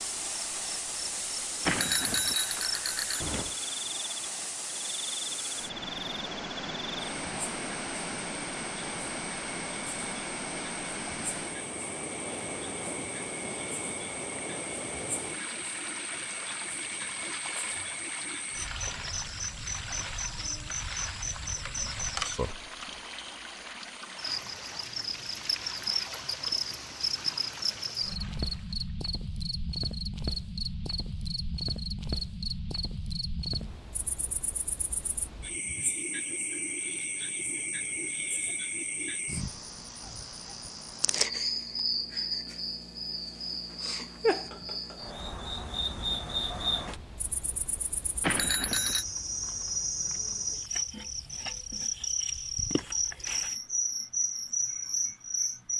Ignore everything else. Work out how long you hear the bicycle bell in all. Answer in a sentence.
The bicycle bell can be heard for 3 seconds in total.